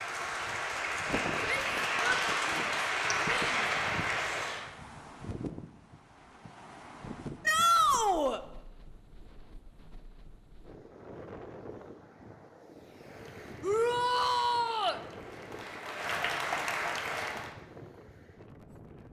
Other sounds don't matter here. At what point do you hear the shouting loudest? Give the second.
8 s.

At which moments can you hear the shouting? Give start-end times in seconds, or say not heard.
1.4-3.6, 7.5-8.4, 13.6-15.0.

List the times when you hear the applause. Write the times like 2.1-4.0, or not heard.
0.0-4.7, 12.9-17.6.